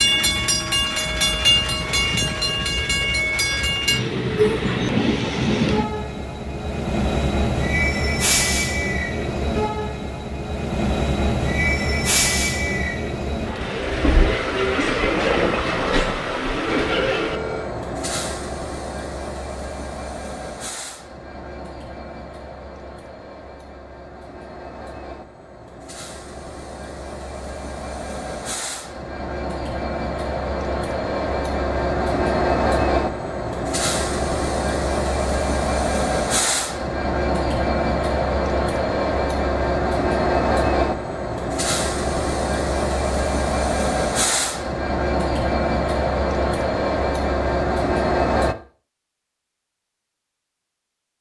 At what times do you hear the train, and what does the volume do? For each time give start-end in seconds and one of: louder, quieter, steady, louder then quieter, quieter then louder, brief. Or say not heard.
0.0-48.5 quieter then louder.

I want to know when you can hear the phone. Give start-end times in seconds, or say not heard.
16.7-17.7.